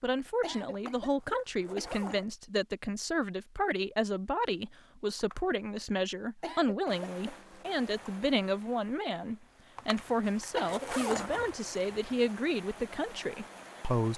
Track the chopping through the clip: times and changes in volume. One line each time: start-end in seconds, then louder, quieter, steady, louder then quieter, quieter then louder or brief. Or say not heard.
not heard.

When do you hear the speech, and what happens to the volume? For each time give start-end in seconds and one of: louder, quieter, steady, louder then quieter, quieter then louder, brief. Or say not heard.
0.0-14.1 steady.